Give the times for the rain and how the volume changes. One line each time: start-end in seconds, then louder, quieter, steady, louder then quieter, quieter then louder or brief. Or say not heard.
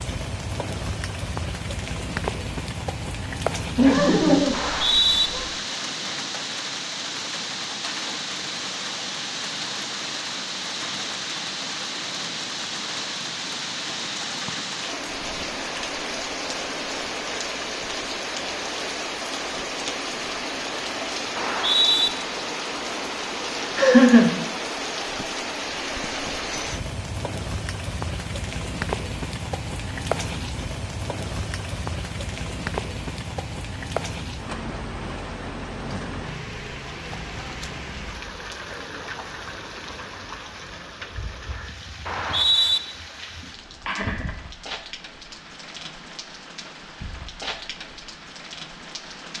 0.0-49.3 quieter.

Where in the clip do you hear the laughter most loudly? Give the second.
24 s.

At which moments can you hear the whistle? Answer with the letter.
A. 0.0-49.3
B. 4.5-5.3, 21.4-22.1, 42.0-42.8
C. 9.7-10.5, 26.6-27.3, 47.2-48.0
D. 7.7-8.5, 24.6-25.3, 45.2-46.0
B.